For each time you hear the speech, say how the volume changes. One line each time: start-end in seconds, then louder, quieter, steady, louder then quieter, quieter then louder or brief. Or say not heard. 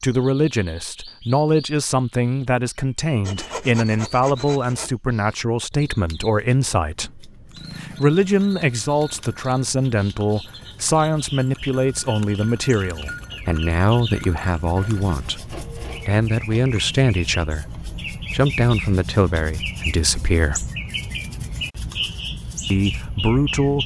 0.0-20.7 steady
22.7-23.8 brief.